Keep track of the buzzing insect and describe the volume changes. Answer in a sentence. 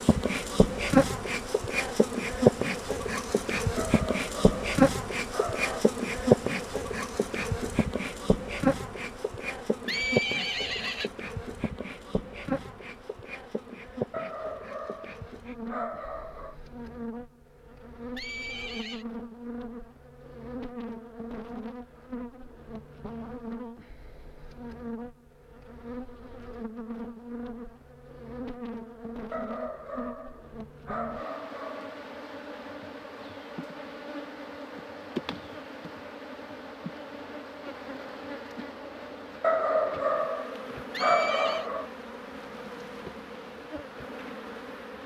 The volume of the buzzing insect goes down.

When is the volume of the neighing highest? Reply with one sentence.
The volume of the neighing peaks at 10 seconds.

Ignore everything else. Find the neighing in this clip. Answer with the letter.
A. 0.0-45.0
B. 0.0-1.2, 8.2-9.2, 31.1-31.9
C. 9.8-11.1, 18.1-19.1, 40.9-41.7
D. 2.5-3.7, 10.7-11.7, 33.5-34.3
C.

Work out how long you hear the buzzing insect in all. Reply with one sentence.
You can hear the buzzing insect for 45 seconds altogether.